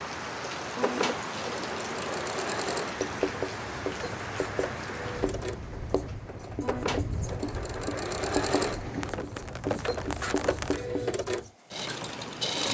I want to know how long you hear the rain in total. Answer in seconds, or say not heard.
11 s.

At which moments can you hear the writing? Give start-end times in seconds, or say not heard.
3.0-11.5.